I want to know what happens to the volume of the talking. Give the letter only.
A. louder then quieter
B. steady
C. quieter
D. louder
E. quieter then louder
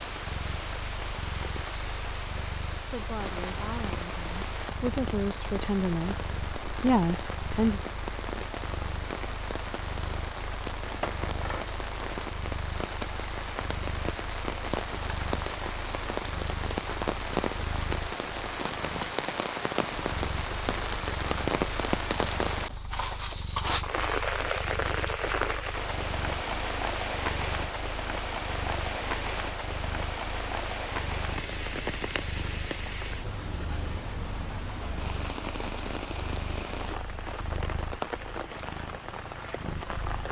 D.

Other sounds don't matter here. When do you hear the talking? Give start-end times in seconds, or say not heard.
2.8-7.8.